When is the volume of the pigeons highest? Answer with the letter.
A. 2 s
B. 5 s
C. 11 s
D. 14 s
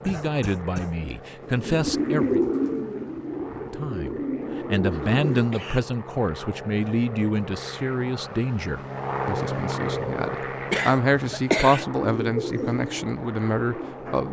A.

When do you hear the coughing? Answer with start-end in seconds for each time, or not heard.
0.0-0.9, 4.9-5.8, 10.7-11.8.